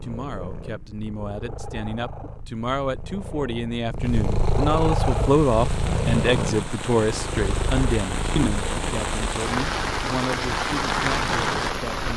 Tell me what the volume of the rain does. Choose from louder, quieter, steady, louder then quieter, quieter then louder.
louder.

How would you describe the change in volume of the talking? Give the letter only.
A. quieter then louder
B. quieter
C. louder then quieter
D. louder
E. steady
C.